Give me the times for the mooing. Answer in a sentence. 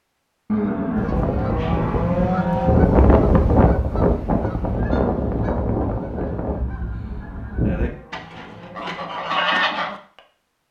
The mooing can be heard from 0.5 to 2.9 s and from 7.0 to 9.2 s.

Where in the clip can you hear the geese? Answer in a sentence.
You can hear the geese from 0.9 to 9.9 s.